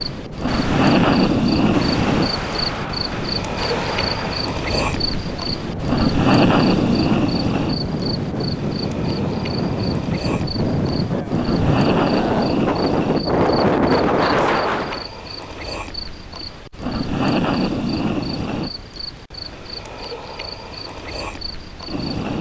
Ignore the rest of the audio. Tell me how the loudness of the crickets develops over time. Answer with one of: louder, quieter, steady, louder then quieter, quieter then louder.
quieter.